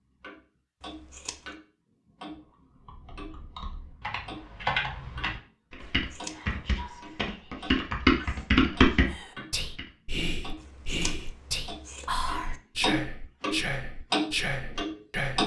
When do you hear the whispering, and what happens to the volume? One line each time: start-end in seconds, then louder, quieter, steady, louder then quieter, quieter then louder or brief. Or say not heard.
6.2-15.4 louder.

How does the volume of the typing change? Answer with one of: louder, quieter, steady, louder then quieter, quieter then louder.
louder.